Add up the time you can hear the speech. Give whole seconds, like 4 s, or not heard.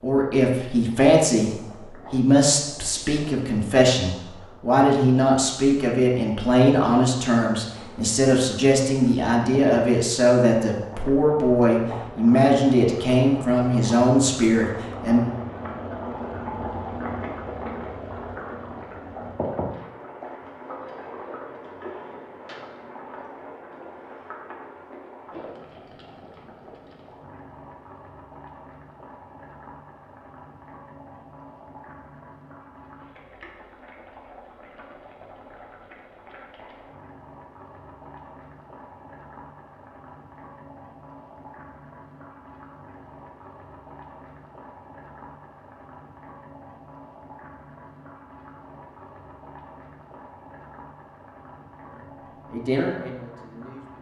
17 s.